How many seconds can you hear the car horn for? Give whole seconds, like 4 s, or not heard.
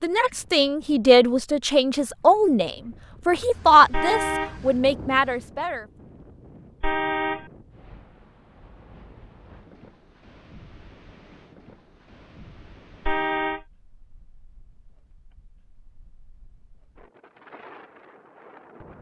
2 s.